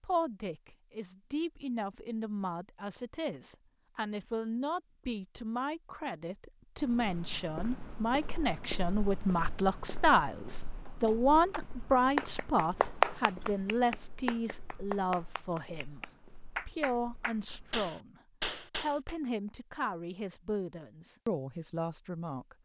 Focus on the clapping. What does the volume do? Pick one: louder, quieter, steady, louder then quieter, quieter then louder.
louder then quieter.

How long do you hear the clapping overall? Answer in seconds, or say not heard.
8 s.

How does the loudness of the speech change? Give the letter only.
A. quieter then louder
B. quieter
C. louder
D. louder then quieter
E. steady
D.